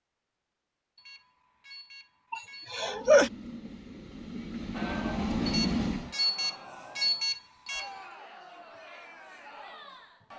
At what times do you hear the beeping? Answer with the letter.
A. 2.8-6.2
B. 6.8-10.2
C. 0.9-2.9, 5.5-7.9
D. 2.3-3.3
C.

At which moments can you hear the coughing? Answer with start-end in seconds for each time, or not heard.
2.3-3.3.